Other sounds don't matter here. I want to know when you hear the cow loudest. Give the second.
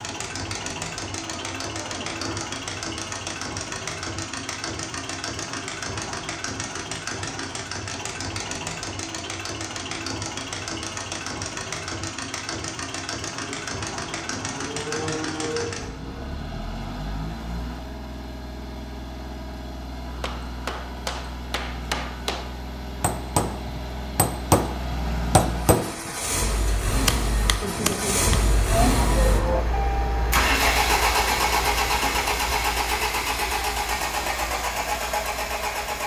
29 s.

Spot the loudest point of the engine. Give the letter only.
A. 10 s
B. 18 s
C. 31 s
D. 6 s
C.